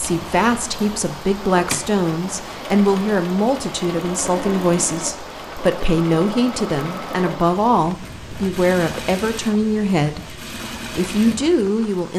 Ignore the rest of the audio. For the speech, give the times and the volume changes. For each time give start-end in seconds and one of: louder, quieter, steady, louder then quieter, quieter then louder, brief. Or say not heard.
0.0-12.1 steady.